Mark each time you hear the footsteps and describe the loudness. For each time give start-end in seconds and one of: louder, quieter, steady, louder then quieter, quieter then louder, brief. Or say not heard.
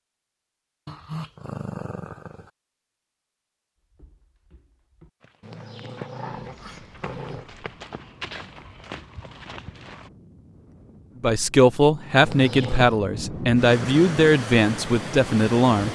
3.9-10.1 louder.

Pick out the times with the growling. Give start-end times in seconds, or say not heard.
0.8-2.5, 5.4-7.5, 12.2-13.0.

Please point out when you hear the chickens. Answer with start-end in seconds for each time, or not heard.
not heard.